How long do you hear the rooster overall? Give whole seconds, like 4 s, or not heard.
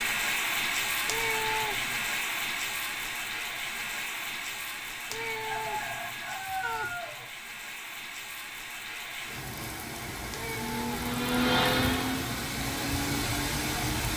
2 s.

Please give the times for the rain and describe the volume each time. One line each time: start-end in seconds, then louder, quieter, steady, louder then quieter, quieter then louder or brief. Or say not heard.
0.0-14.1 quieter then louder.